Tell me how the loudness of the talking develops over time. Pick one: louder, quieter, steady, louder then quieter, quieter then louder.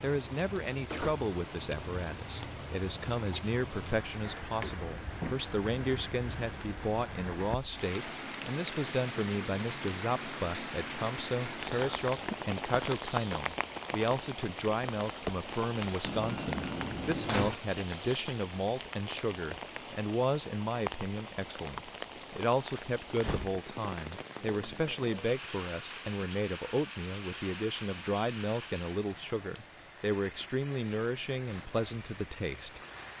steady.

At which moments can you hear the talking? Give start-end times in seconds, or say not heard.
0.0-33.1.